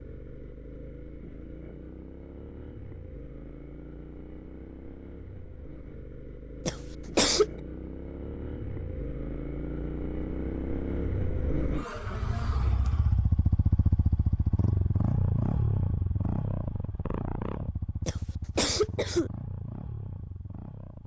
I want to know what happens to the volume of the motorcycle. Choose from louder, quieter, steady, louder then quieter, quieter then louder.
louder then quieter.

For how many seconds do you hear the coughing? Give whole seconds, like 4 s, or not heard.
2 s.